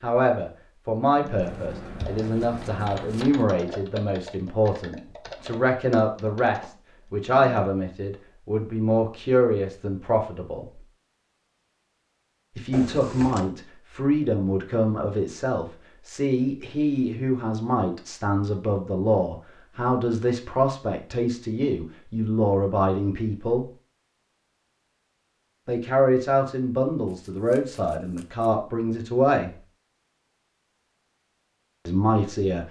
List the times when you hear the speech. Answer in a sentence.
The speech can be heard from 0.0 to 10.8 s, from 12.6 to 23.6 s, from 25.6 to 29.5 s and from 31.9 to 32.6 s.